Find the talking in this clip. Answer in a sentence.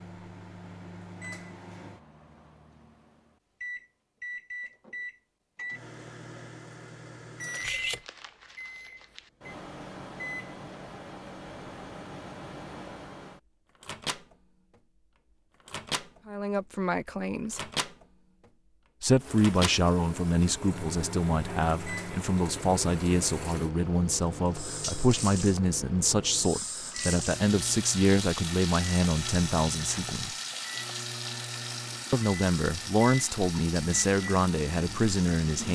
The talking can be heard from 16.2 to 17.6 s, from 19.0 to 30.4 s and from 32.1 to 35.6 s.